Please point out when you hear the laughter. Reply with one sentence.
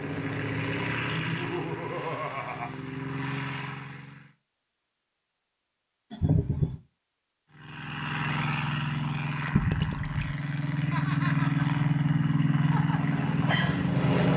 The laughter can be heard from 1.2 to 2.7 s, from 6.1 to 6.8 s and from 10.9 to 11.7 s.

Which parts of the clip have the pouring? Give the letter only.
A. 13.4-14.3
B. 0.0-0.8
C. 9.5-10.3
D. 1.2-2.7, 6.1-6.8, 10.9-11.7
C.